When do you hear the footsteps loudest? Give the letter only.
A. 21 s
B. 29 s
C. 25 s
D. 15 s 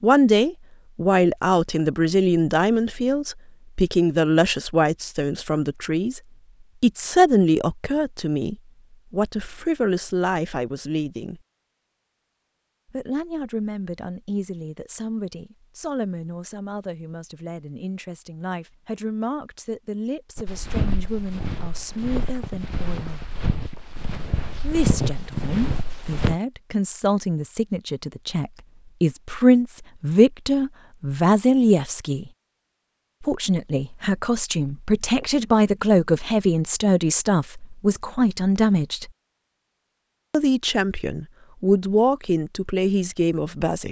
C.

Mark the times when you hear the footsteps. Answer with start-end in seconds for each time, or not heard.
20.4-26.4.